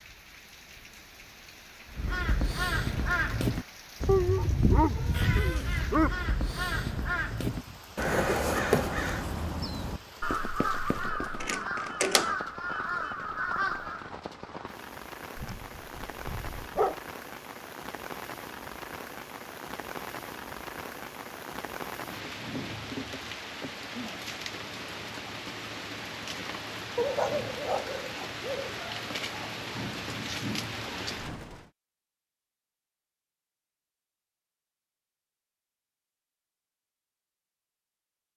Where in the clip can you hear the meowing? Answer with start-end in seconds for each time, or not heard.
4.2-5.6.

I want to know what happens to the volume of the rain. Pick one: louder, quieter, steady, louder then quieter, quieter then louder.
louder.